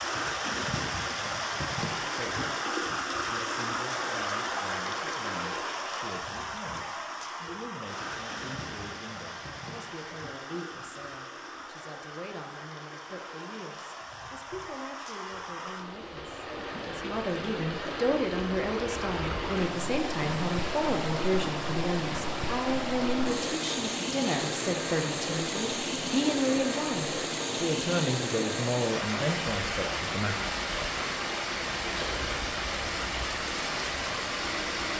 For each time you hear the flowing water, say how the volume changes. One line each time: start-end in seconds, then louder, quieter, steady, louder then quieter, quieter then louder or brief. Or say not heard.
0.0-34.9 quieter then louder.